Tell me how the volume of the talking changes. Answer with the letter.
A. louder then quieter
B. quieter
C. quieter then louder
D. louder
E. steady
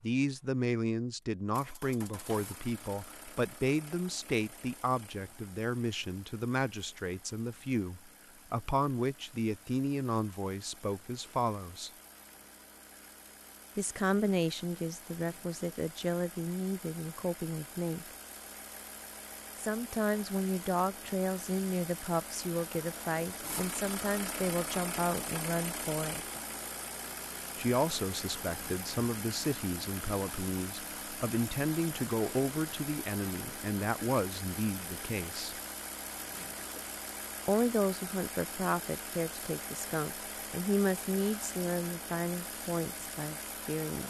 E.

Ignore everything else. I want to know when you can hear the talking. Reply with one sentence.
You can hear the talking from 0.0 to 11.9 s, from 13.8 to 18.1 s, from 19.6 to 26.2 s, from 27.6 to 35.5 s and from 37.5 to 44.0 s.